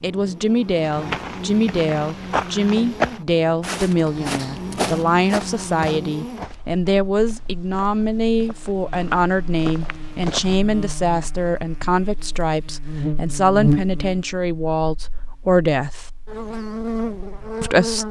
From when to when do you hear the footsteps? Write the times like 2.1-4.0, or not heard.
0.8-10.6.